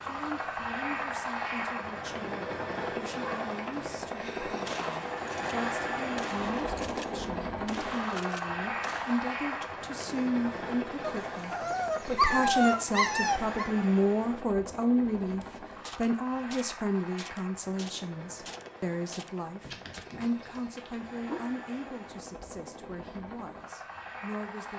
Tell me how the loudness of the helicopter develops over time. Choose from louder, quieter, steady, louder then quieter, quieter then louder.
quieter.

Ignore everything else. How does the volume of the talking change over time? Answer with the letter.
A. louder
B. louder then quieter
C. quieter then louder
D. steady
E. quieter
B.